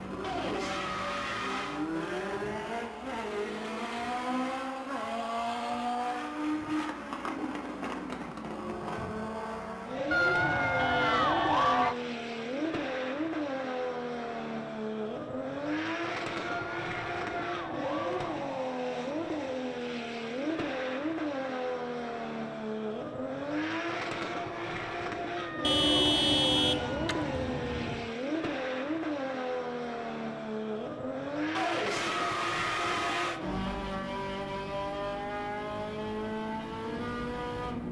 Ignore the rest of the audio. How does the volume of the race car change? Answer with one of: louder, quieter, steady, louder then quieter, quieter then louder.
steady.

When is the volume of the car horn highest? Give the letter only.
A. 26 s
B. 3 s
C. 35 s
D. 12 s
A.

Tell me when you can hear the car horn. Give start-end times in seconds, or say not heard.
10.8-11.6, 25.6-28.1.